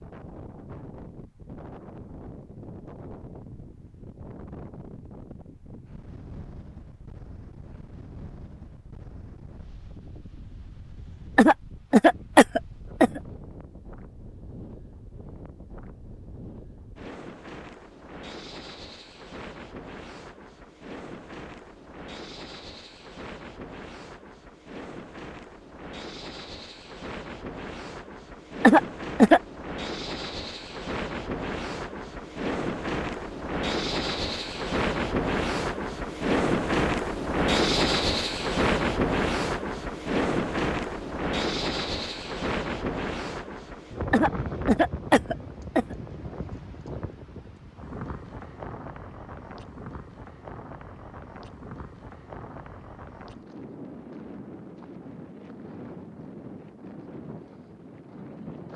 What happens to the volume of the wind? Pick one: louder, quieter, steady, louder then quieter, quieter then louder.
louder then quieter.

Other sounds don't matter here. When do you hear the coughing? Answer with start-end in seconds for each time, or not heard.
11.3-13.2, 28.6-29.4, 44.1-46.0.